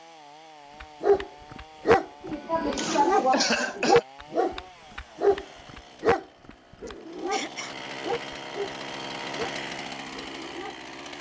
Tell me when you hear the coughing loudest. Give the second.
3 s.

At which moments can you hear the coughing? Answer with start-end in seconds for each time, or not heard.
2.2-4.0, 6.8-7.8.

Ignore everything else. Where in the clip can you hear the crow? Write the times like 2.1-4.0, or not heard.
not heard.